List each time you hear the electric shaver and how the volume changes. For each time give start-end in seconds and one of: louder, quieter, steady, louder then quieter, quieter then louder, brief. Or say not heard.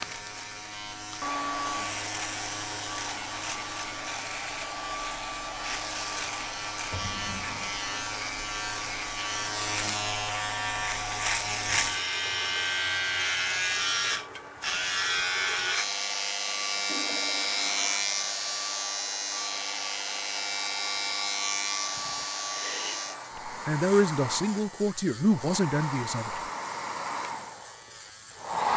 0.0-28.7 louder then quieter.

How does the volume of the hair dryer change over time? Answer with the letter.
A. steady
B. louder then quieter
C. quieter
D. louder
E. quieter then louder
E.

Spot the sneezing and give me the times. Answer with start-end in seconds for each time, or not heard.
22.4-23.2.